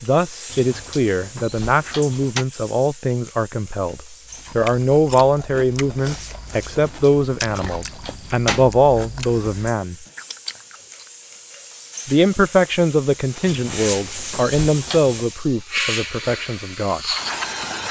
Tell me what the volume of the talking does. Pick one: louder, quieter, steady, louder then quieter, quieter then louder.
steady.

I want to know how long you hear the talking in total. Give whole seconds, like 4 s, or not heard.
15 s.